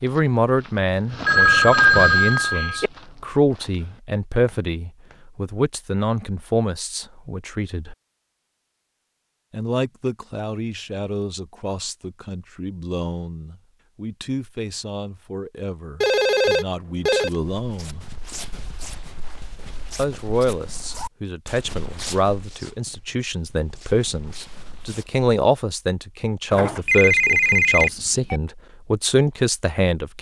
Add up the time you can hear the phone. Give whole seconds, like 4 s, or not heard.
5 s.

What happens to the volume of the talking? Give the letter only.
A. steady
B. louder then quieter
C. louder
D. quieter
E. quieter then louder
E.